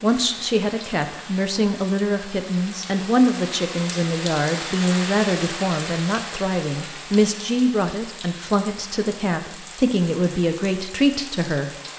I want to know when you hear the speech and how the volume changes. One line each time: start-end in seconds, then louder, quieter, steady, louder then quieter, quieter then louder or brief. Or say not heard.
0.0-11.8 steady.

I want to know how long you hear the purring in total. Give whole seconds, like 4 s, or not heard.
not heard.